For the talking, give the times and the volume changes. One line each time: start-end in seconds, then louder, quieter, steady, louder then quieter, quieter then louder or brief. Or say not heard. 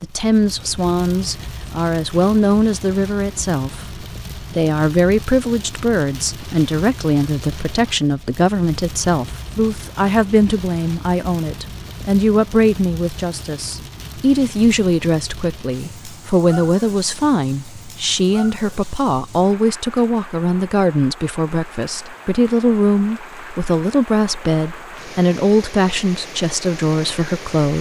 0.0-27.7 steady.